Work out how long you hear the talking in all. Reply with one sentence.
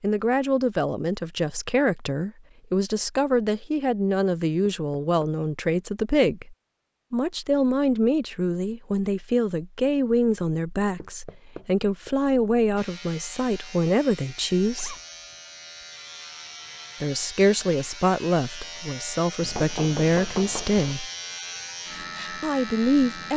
The talking can be heard for 20 seconds in total.